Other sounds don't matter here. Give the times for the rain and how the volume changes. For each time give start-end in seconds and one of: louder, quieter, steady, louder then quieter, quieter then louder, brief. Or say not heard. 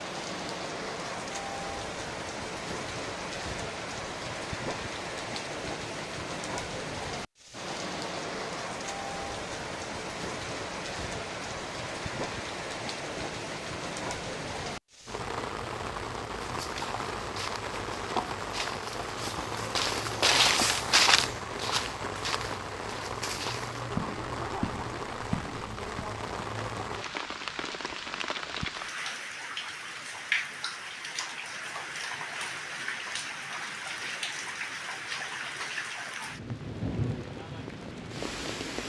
0.0-38.8 steady.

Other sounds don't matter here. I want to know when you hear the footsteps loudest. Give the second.
21 s.